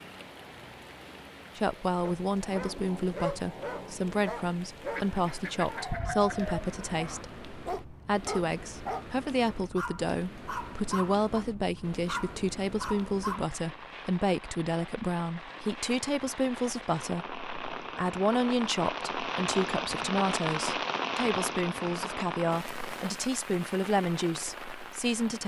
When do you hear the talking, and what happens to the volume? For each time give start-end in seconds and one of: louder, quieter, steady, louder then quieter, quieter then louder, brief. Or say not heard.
1.6-25.4 steady.